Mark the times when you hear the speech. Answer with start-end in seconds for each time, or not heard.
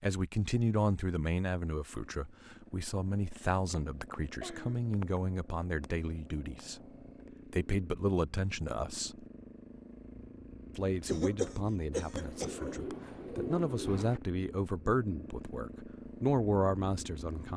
0.0-6.8, 7.5-9.2, 10.8-17.5.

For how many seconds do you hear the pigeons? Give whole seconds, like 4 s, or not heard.
2 s.